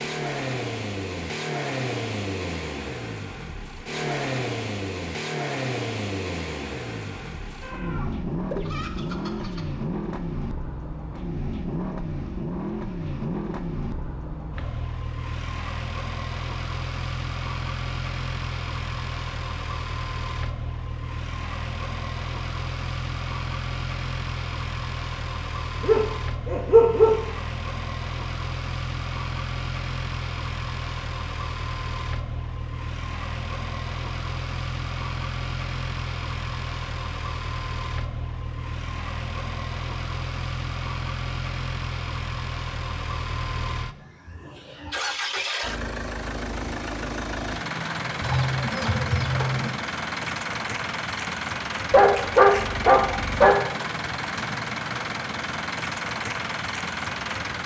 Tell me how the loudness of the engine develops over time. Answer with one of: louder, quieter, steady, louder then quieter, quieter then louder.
steady.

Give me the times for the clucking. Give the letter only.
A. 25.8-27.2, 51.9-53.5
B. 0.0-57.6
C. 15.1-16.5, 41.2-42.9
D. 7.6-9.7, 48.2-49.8
D.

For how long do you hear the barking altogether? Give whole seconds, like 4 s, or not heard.
3 s.